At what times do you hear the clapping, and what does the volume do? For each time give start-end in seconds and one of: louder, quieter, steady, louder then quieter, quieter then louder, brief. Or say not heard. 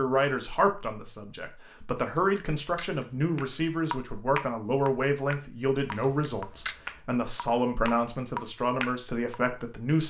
3.4-9.4 quieter then louder.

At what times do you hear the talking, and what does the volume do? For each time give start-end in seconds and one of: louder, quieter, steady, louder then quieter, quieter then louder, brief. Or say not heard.
0.0-10.0 steady.